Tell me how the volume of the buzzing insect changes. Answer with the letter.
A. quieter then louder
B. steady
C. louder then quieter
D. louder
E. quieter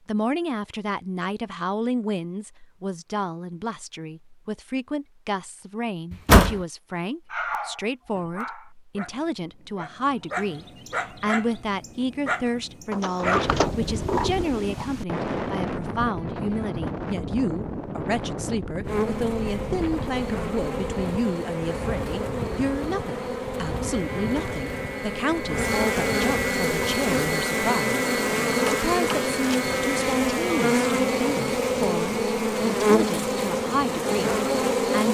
D.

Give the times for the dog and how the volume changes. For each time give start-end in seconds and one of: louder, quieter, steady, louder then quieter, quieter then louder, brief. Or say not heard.
7.3-13.4 quieter then louder.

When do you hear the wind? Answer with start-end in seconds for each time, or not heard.
13.2-35.1.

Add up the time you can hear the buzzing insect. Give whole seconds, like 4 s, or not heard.
16 s.